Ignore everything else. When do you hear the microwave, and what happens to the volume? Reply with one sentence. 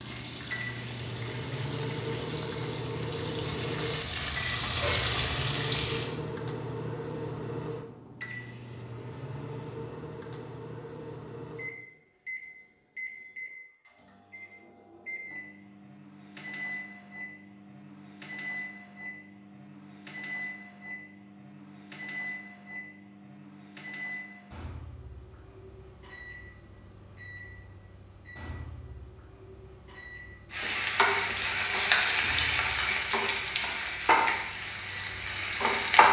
You can hear the microwave from 0.0 to 36.0 s, getting quieter.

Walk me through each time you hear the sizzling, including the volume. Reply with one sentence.
The sizzling can be heard from 0.0 to 6.1 s, getting louder; and from 30.5 to 36.0 s, getting quieter.